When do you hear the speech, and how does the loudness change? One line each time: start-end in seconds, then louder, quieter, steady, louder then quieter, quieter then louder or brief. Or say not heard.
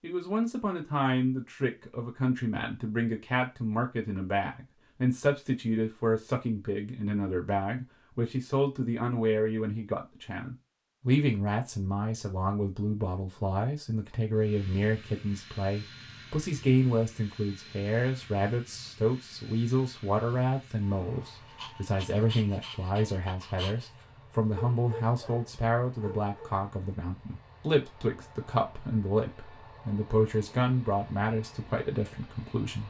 0.0-32.8 steady.